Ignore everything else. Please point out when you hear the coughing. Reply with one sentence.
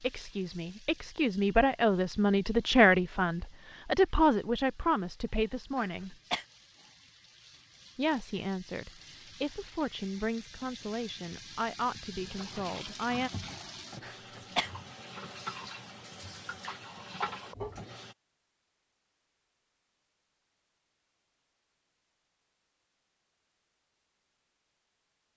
You can hear the coughing from 5.8 to 6.5 s and from 14.0 to 14.7 s.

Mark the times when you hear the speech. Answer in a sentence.
You can hear the speech from 0.0 to 6.2 s and from 8.0 to 13.3 s.